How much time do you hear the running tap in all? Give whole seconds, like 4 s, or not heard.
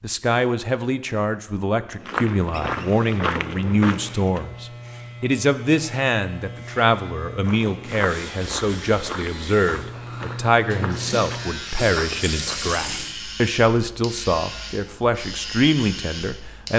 2 s.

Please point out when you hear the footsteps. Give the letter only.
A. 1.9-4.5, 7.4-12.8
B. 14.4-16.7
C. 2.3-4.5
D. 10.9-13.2
A.